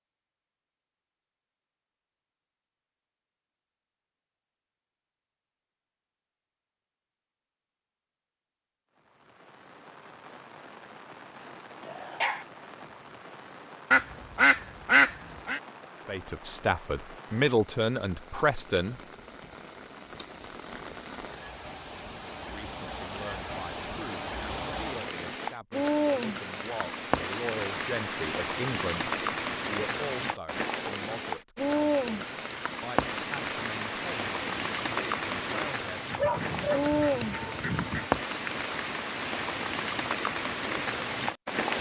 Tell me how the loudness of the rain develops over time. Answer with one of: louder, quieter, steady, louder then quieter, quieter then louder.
louder.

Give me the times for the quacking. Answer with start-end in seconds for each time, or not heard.
13.9-15.6, 36.1-38.1.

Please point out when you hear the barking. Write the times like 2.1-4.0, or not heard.
11.8-12.4, 36.1-36.9.